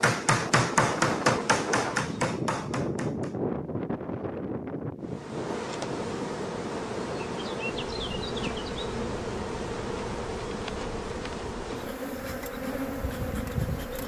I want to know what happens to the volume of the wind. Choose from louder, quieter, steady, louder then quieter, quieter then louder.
quieter.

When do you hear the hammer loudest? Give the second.
1 s.